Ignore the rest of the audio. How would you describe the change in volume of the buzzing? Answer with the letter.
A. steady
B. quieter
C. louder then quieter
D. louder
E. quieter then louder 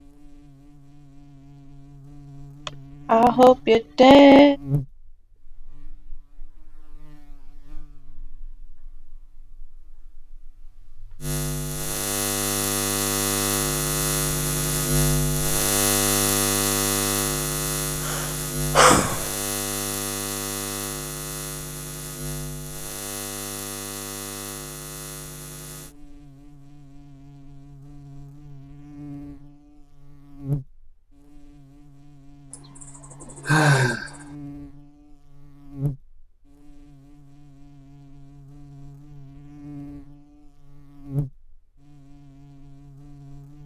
C.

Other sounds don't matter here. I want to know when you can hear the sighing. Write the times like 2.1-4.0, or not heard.
2.6-4.5, 18.1-19.2, 33.2-34.1.